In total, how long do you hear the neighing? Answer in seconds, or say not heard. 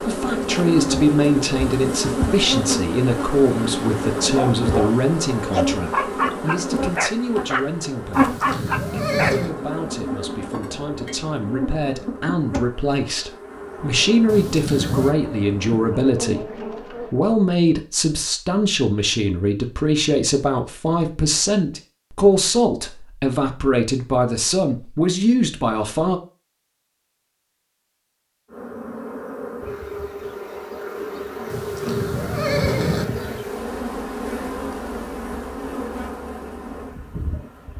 4 s.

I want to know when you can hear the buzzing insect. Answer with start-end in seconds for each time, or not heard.
0.0-17.1, 28.5-37.7.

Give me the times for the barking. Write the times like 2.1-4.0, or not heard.
4.2-9.3.